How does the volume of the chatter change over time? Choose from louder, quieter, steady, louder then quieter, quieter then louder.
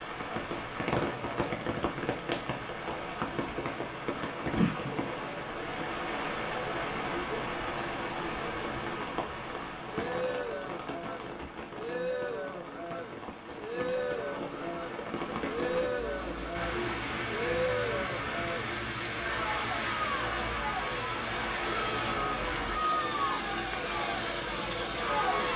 louder.